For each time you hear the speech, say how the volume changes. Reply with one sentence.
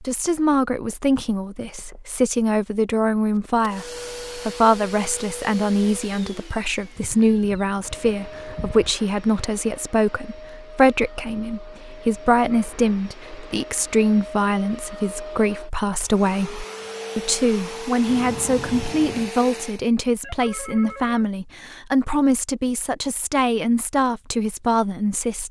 The speech can be heard from 0.0 to 25.4 s, at a steady volume.